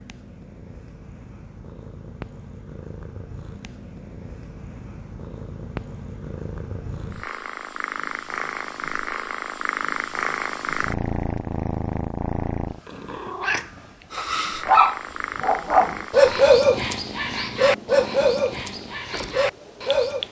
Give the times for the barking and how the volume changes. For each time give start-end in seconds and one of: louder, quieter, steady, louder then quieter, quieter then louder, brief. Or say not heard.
14.2-20.2 quieter.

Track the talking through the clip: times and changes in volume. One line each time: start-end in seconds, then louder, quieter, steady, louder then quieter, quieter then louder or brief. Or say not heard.
not heard.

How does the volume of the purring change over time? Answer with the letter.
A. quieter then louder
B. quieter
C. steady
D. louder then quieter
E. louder
D.